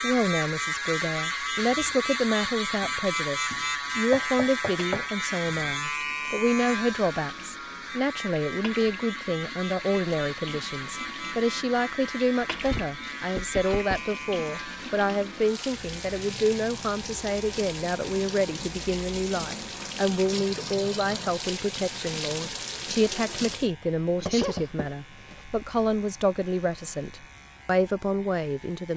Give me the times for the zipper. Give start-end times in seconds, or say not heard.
not heard.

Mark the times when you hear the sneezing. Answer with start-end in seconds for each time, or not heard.
24.1-24.7.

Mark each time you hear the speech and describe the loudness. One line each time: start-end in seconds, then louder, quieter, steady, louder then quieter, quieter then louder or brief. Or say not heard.
0.0-28.9 steady.